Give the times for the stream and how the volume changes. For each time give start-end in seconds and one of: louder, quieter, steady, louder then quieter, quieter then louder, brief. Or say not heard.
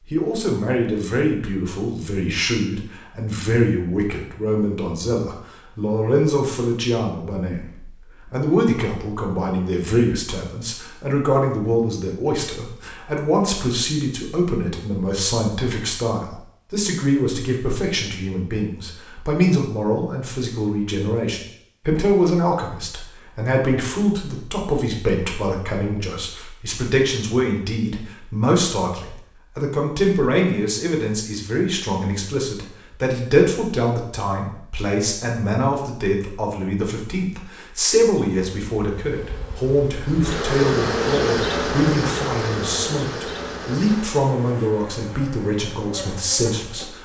not heard.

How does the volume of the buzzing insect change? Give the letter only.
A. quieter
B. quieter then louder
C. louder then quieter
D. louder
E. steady
C.